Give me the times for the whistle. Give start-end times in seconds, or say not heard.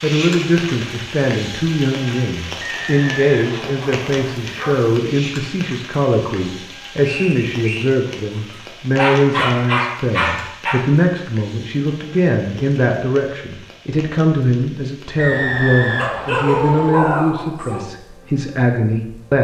2.6-4.3, 7.0-7.9, 15.2-16.9.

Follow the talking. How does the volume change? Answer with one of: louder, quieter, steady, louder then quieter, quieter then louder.
steady.